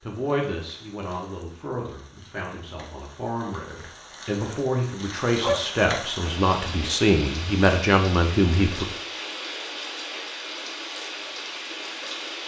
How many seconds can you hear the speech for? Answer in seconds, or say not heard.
9 s.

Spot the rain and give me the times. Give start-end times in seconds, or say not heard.
0.0-12.4.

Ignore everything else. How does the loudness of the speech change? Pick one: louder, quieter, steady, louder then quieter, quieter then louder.
louder.